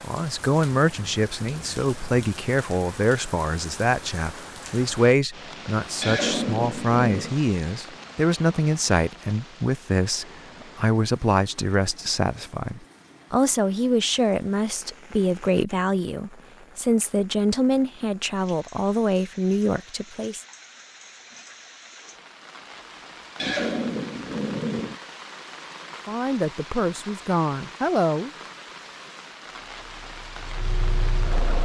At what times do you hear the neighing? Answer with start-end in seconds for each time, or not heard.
6.0-7.3, 23.4-25.0.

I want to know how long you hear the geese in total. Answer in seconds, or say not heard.
not heard.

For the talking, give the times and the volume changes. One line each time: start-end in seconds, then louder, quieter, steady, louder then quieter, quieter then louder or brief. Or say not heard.
0.0-20.4 steady
26.1-28.3 brief.